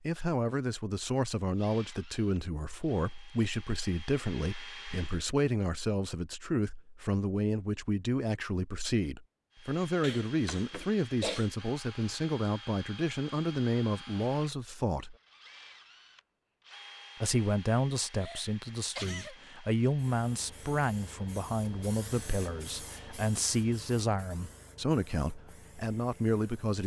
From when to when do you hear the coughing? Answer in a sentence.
The coughing can be heard from 10.0 to 11.4 s and from 18.1 to 19.4 s.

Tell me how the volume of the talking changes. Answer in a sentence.
The loudness of the talking stays about the same.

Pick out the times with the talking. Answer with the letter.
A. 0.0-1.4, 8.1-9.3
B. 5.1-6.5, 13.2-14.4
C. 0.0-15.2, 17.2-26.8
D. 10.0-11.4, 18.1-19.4
C.